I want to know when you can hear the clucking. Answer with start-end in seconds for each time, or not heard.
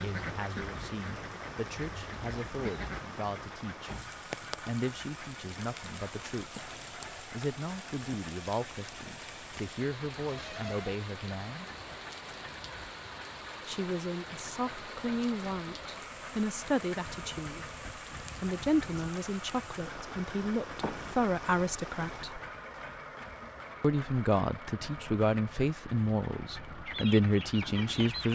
0.0-3.0, 26.9-28.3.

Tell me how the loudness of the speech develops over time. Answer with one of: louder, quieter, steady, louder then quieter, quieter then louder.
louder.